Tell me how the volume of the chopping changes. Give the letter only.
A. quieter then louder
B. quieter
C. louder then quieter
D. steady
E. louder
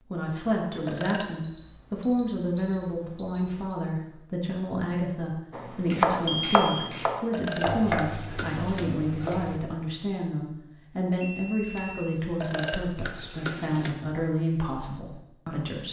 B.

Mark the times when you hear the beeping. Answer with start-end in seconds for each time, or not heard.
1.4-3.8, 6.2-6.8, 11.2-12.2.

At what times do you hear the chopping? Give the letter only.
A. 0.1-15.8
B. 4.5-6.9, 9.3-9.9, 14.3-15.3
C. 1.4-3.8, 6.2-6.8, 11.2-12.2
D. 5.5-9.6
D.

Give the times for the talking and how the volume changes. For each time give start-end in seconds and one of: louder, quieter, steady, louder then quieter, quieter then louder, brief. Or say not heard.
0.1-15.8 steady.